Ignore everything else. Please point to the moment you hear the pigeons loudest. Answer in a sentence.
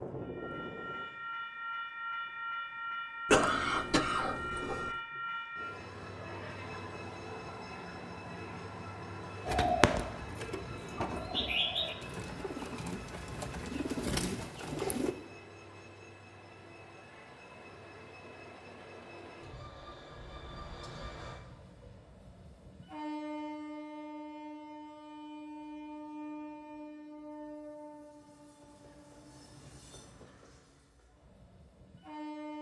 The loudest moment of the pigeons is at 10 seconds.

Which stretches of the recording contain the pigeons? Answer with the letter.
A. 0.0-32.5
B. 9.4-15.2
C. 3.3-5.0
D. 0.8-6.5
B.